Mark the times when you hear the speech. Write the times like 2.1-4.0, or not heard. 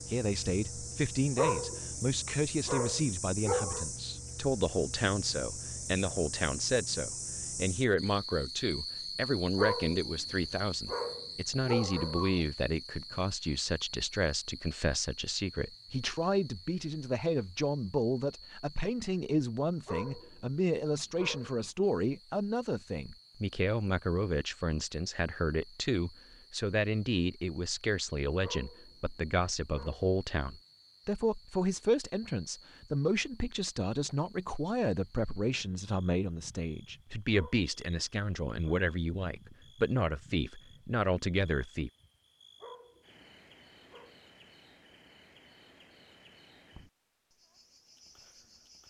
0.1-41.9.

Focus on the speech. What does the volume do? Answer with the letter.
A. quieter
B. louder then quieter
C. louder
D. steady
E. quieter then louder
D.